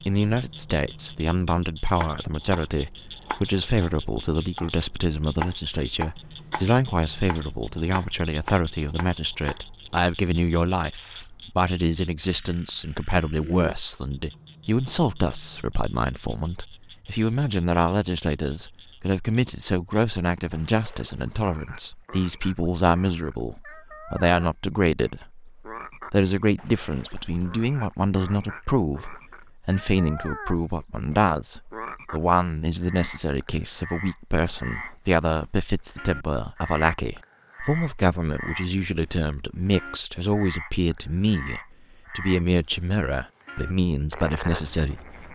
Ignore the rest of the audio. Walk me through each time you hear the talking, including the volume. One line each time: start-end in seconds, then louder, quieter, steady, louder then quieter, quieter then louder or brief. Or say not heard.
0.1-45.3 steady.